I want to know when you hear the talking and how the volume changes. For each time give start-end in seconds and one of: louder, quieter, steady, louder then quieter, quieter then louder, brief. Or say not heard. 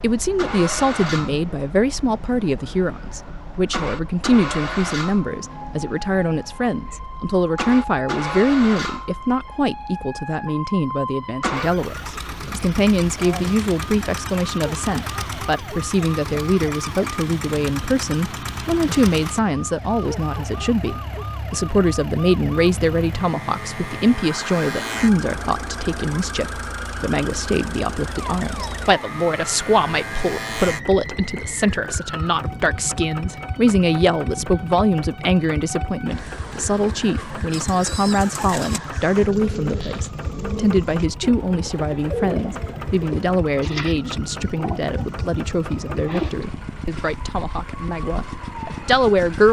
0.0-49.4 steady.